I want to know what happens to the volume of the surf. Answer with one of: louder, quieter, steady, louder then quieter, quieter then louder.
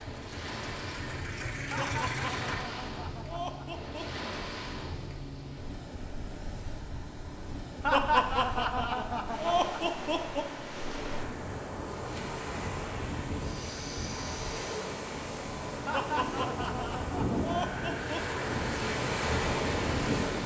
louder.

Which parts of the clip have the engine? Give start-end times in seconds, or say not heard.
0.0-2.6.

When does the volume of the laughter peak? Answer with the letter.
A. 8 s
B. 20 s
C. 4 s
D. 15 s
A.